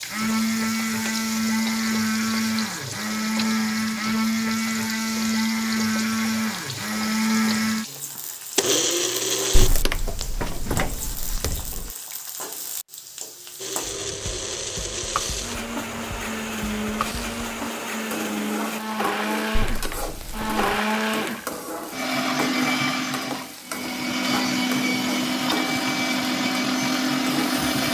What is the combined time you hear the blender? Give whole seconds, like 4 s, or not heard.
24 s.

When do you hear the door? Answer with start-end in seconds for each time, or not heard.
9.6-11.9, 19.6-20.8.